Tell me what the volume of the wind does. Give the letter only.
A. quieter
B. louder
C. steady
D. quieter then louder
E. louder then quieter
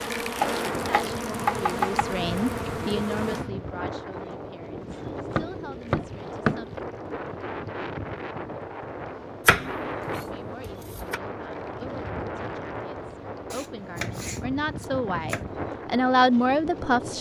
C.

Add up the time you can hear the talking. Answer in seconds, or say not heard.
14 s.